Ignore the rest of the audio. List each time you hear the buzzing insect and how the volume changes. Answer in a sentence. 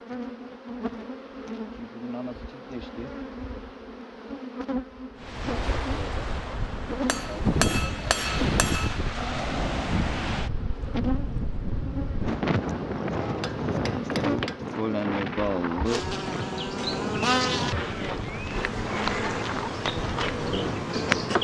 You can hear the buzzing insect from 0.0 to 21.3 s, getting louder.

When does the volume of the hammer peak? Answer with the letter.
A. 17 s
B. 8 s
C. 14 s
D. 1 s
B.